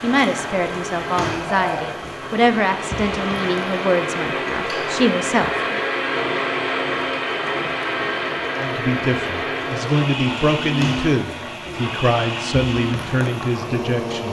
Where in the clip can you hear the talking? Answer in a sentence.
The talking can be heard from 0.0 to 5.8 s and from 8.6 to 14.2 s.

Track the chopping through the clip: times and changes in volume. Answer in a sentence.
You can't hear the chopping here.